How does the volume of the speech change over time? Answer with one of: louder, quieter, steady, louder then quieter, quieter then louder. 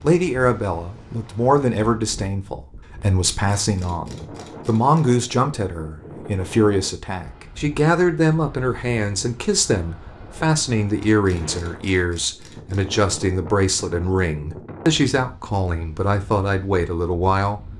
steady.